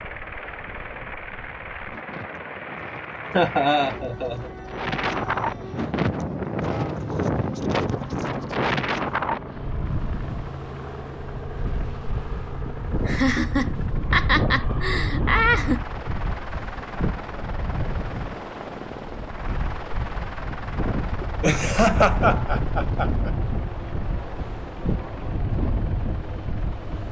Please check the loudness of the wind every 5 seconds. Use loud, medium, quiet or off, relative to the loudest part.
quiet, loud, medium, medium, medium, medium.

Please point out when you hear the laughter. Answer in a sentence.
The laughter can be heard from 3.3 to 4.5 s, from 13.1 to 15.8 s and from 21.4 to 23.3 s.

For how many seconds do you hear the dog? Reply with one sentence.
The dog can't be heard in this clip.